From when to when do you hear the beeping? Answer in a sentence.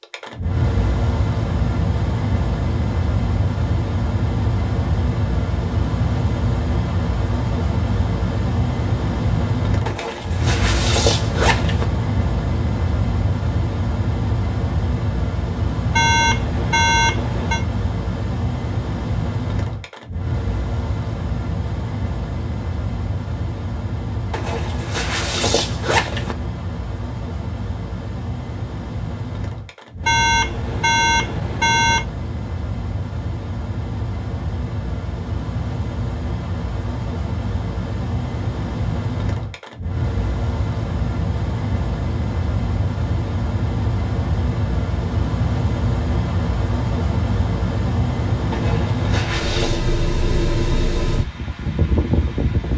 You can hear the beeping from 15.9 to 17.6 s and from 30.0 to 32.0 s.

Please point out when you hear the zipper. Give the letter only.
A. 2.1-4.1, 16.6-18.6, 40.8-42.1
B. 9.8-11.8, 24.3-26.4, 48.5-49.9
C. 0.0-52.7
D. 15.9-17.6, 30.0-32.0
B.